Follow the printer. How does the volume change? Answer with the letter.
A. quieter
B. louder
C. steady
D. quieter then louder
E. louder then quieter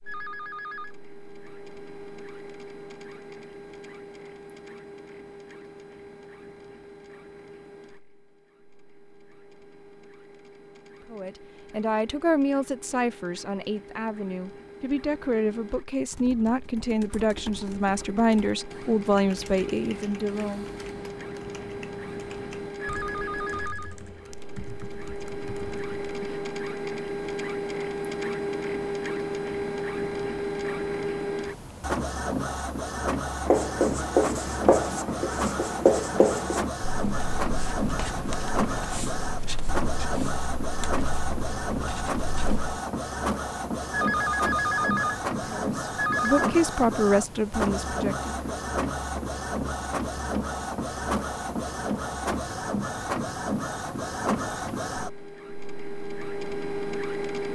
B.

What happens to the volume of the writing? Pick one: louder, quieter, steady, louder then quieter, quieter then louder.
quieter.